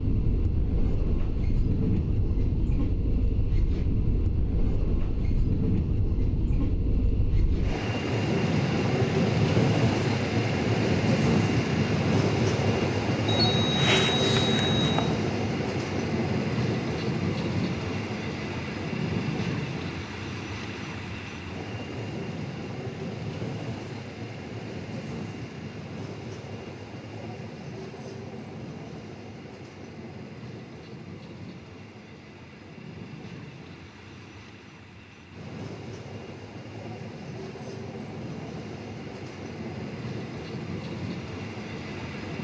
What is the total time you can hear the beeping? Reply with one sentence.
The beeping can be heard for 2 seconds in total.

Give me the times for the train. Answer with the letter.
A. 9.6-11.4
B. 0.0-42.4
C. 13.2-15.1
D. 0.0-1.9
B.